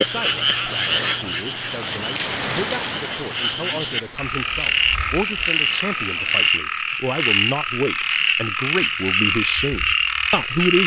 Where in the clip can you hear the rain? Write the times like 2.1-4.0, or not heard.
0.0-6.5.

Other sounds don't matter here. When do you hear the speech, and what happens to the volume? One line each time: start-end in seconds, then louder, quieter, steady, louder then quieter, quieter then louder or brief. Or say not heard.
0.0-10.8 louder.